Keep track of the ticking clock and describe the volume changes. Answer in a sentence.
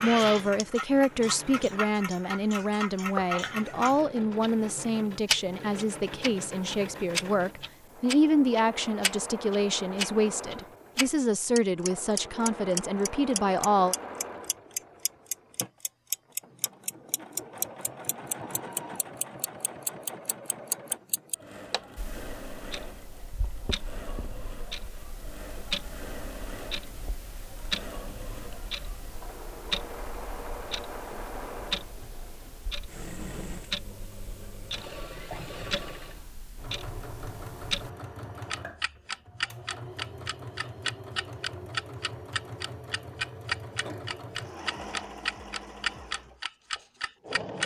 The loudness of the ticking clock goes down, then up.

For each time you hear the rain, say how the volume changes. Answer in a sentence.
The rain can't be heard in this clip.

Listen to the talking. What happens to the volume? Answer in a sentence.
The loudness of the talking stays about the same.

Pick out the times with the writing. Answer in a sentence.
You can't hear the writing here.